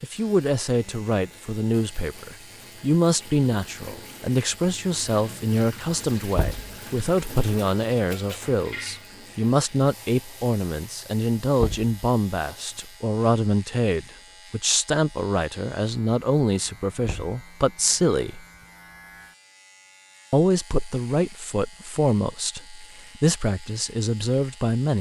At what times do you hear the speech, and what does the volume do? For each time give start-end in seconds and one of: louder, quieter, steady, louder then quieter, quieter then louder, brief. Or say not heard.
0.0-18.4 steady
20.3-24.9 quieter then louder.